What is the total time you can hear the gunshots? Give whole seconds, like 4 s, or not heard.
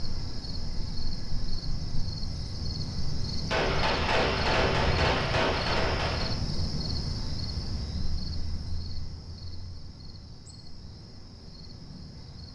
3 s.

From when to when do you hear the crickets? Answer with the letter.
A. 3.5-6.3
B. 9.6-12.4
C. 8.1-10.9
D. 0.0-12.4
D.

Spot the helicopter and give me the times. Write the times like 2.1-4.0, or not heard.
not heard.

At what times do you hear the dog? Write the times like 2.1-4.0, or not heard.
not heard.